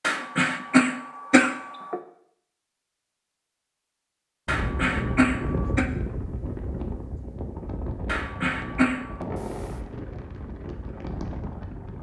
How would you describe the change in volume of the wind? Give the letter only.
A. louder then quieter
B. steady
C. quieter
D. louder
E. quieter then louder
C.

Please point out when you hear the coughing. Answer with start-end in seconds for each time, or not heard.
0.0-2.0, 4.5-5.8, 8.1-9.2.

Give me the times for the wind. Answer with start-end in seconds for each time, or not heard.
4.5-11.9.